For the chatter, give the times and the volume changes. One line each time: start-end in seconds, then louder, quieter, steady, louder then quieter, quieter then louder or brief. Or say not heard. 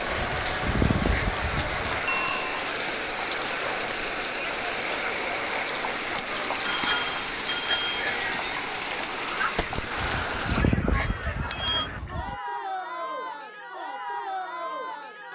0.0-15.3 steady.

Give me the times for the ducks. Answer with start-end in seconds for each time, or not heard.
0.1-2.0, 9.9-12.3.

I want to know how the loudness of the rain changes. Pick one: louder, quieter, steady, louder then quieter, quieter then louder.
steady.